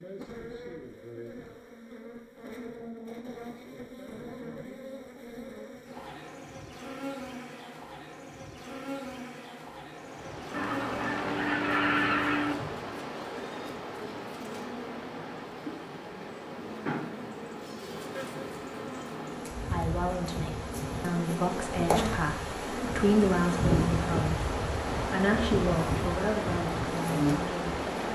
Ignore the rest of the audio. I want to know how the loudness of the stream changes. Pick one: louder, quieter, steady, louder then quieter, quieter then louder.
quieter then louder.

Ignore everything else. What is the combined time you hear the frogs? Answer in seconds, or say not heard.
not heard.